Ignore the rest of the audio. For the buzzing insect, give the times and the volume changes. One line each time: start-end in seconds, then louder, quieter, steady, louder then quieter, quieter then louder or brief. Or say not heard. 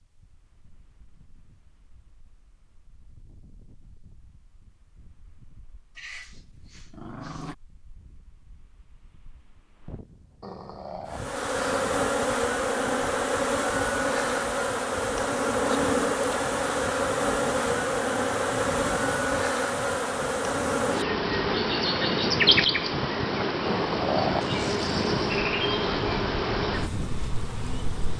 11.1-28.1 steady.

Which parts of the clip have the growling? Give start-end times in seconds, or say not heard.
6.0-7.5, 10.4-11.9, 23.6-25.4.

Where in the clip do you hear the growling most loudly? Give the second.
24 s.